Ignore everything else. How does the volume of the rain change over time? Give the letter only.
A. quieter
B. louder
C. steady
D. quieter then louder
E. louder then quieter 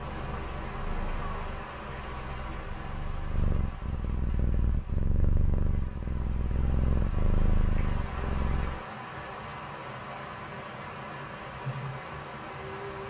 D.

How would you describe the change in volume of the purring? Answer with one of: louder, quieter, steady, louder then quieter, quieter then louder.
louder.